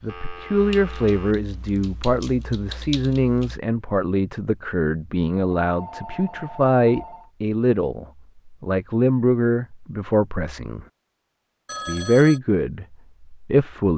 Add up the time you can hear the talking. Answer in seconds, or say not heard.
13 s.